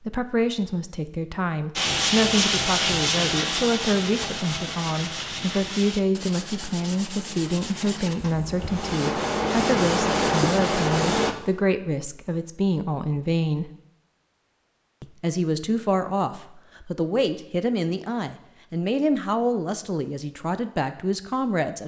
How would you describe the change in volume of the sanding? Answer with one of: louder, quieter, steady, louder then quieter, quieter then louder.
quieter then louder.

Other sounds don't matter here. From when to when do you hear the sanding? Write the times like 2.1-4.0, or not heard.
1.8-11.3.